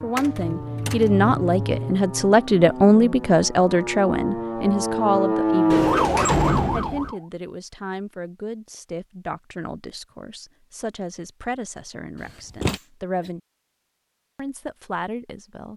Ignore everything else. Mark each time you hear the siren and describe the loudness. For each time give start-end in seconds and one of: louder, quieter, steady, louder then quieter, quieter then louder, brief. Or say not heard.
0.0-7.2 louder.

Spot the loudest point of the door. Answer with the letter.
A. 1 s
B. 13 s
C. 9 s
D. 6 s
D.